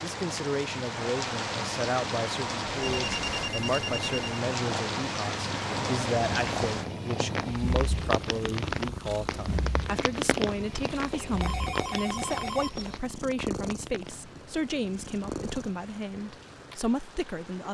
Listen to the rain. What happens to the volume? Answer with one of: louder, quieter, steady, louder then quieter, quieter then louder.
quieter.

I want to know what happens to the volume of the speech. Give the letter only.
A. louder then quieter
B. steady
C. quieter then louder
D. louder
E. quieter
B.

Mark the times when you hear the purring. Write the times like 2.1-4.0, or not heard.
0.0-17.6.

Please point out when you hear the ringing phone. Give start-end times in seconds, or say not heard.
2.8-4.5, 11.1-13.0.